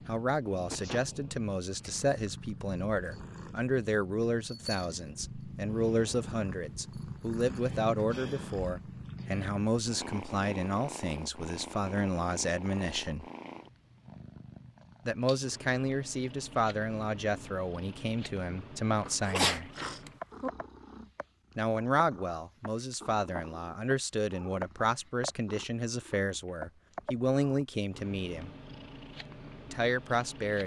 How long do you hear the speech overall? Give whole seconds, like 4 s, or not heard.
26 s.